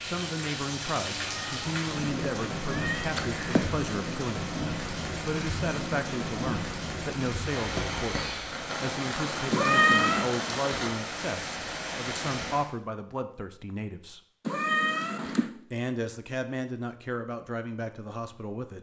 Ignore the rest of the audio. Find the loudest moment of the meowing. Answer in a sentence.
The loudest moment of the meowing is at 10 seconds.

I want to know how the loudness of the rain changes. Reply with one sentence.
The volume of the rain stays about the same.